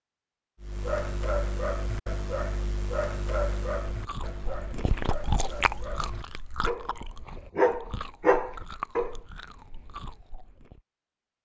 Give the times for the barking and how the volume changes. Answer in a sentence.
The barking can be heard from 0.6 to 9.2 s, getting quieter then louder.